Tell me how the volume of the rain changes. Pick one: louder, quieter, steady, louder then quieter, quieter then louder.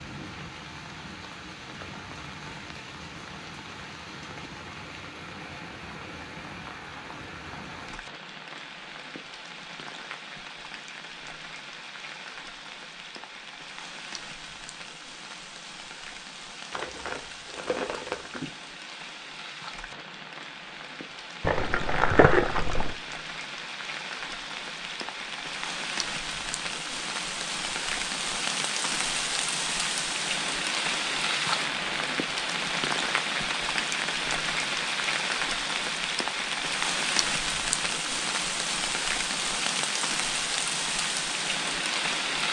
louder.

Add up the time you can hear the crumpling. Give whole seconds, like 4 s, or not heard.
3 s.